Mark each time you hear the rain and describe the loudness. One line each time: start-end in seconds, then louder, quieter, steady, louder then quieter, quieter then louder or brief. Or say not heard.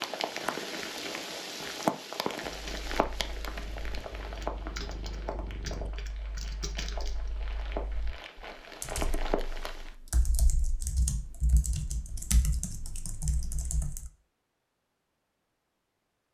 0.0-9.9 quieter then louder.